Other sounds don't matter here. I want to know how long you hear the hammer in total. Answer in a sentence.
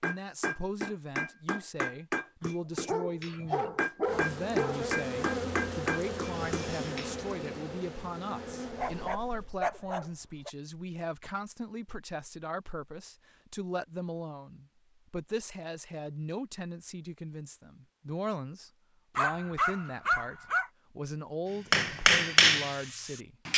You can hear the hammer for 9 seconds altogether.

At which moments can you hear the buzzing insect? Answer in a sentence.
You can hear the buzzing insect from 4.0 to 9.5 s.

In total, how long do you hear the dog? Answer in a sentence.
The dog can be heard for 6 seconds in total.